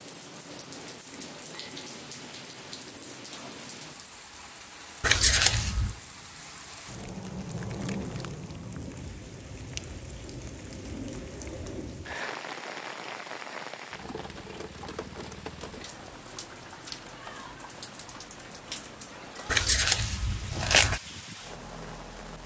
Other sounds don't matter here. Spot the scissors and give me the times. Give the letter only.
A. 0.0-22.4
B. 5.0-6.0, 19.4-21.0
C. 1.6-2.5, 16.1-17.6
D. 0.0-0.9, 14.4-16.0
B.